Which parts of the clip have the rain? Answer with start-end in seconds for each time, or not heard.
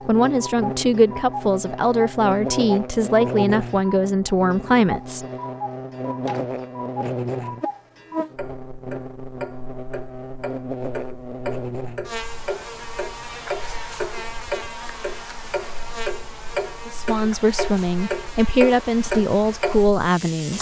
not heard.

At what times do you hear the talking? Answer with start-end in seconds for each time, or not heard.
0.1-5.2, 16.9-20.5.